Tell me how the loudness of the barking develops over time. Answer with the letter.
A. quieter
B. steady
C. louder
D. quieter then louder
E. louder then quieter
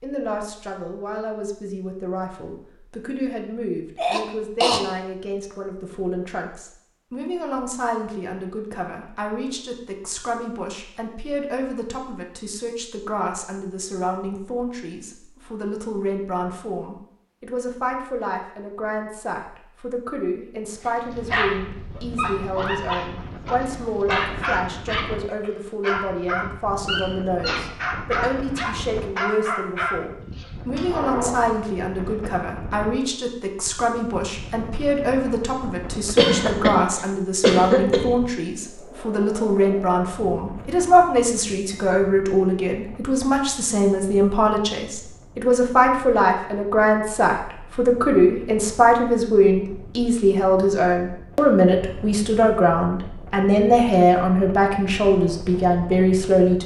B.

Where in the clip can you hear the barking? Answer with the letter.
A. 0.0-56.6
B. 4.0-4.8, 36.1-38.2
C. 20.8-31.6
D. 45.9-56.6
C.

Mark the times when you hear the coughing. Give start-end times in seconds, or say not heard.
4.0-4.8, 36.1-38.2.